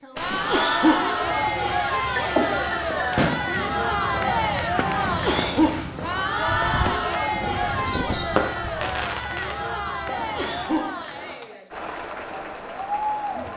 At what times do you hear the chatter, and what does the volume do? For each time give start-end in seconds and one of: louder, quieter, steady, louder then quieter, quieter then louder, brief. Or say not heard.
0.0-13.5 quieter.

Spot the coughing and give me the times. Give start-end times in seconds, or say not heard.
0.3-1.5, 5.0-6.2, 10.2-11.3.